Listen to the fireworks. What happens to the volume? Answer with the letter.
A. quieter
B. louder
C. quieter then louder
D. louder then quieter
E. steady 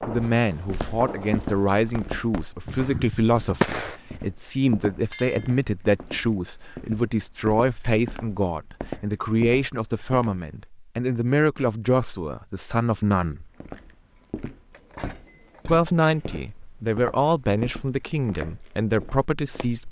C.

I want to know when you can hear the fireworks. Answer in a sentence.
You can hear the fireworks from 0.0 to 4.0 s.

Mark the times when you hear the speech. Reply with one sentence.
You can hear the speech from 0.1 to 13.5 s and from 15.7 to 19.8 s.